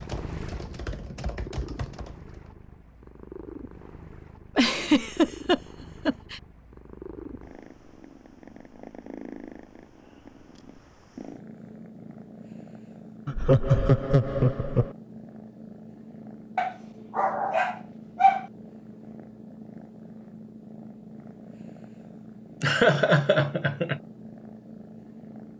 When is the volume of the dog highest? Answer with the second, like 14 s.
18 s.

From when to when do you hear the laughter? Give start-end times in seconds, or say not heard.
4.5-6.4, 13.2-14.9, 22.6-24.0.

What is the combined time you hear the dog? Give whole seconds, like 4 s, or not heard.
2 s.